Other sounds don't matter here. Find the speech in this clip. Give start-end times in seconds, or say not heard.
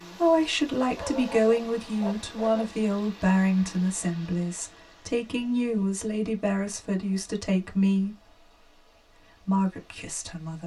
0.1-8.2, 9.4-10.6.